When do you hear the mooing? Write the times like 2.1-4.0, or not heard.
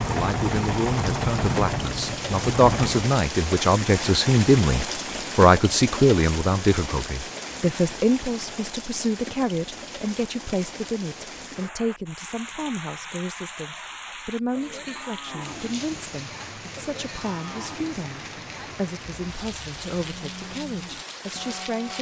14.6-21.9.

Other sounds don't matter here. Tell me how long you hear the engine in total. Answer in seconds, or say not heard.
3 s.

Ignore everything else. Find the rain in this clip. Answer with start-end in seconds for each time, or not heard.
0.0-21.9.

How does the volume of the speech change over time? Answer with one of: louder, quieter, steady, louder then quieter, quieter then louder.
quieter.